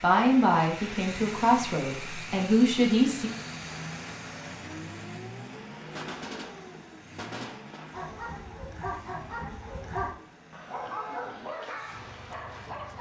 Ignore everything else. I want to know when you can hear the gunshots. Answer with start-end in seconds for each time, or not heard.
6.0-7.9.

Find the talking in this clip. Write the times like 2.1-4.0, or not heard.
0.0-3.3.